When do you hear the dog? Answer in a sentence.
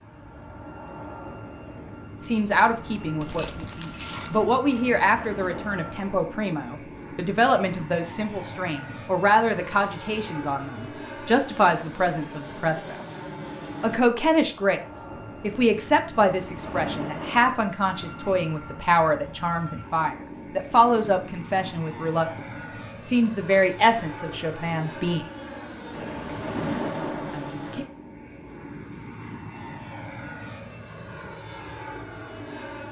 The dog can be heard from 3.2 to 4.5 s.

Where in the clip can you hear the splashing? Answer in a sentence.
You can hear the splashing from 4.7 to 6.2 s, from 16.1 to 17.6 s and from 25.9 to 27.5 s.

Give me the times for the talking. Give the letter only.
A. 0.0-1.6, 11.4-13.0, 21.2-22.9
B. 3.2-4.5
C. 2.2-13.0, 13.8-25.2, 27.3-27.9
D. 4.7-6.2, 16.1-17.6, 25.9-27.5
C.